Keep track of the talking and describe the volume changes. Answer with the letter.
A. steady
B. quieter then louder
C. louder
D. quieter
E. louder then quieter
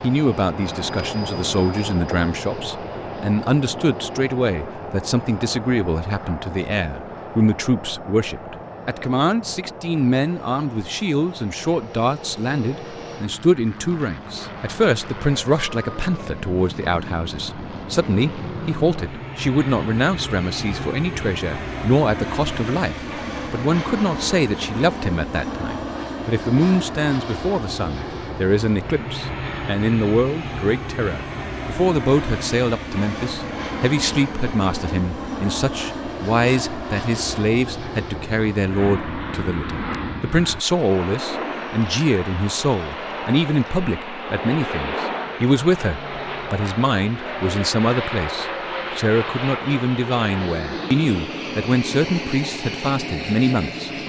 A.